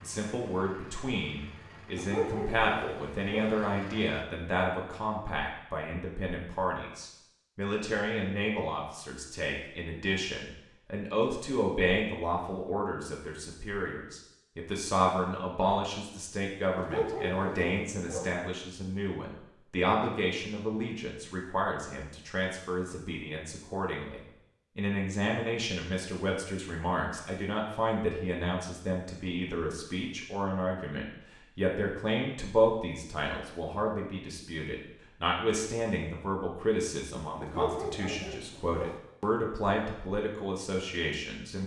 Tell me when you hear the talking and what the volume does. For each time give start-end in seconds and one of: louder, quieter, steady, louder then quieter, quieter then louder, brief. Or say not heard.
0.0-41.6 steady.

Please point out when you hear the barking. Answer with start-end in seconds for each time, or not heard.
1.9-3.5, 16.8-18.4, 37.4-39.0.